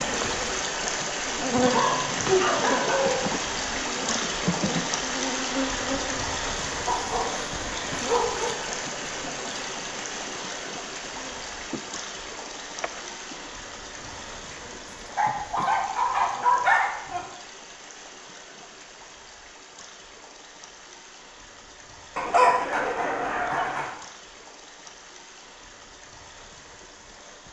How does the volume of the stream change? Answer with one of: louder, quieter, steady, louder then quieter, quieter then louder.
quieter.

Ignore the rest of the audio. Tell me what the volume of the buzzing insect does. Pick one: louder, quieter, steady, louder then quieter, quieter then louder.
quieter.